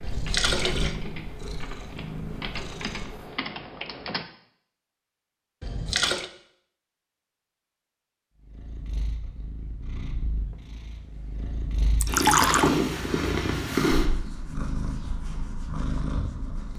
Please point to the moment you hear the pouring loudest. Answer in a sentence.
The loudest moment of the pouring is at 12 seconds.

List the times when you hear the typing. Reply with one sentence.
You can hear the typing from 0.0 to 4.2 s.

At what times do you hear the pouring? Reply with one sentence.
You can hear the pouring from 0.0 to 0.9 s, from 5.6 to 6.3 s and from 12.0 to 12.7 s.